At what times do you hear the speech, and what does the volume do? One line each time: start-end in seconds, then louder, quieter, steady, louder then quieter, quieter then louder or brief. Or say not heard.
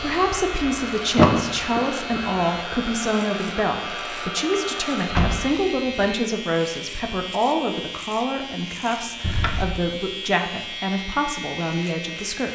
0.0-12.5 steady.